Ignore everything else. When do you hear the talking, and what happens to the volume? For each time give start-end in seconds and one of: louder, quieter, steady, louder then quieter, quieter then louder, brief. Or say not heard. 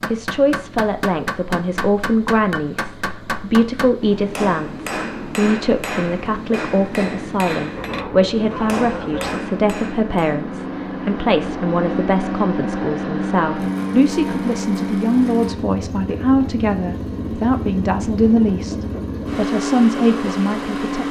0.1-18.8 steady
19.4-21.0 brief.